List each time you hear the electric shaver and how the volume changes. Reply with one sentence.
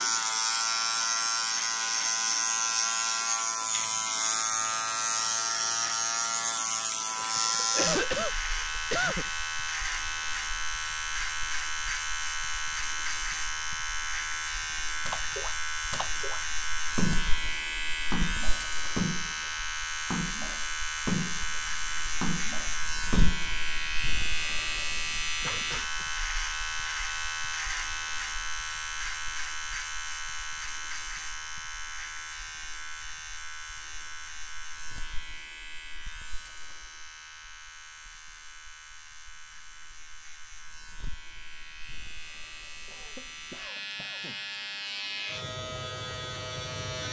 The electric shaver can be heard from 0.0 to 47.0 s, getting quieter.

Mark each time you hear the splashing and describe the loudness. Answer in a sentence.
You can hear the splashing from 15.1 to 23.6 s, getting louder.